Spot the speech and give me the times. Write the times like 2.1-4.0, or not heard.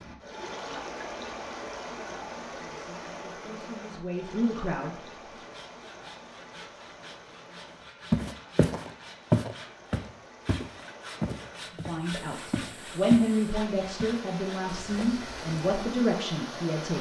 2.5-5.3, 11.7-16.9.